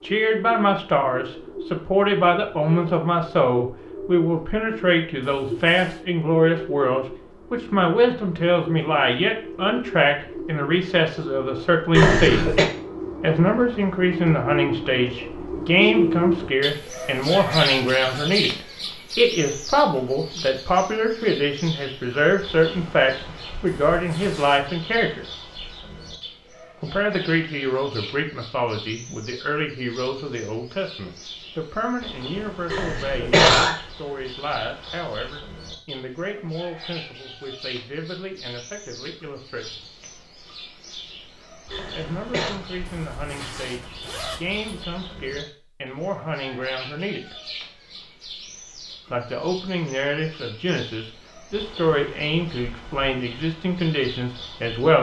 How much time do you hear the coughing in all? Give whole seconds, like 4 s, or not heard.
3 s.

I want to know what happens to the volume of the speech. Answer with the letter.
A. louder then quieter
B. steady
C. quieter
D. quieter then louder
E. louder
D.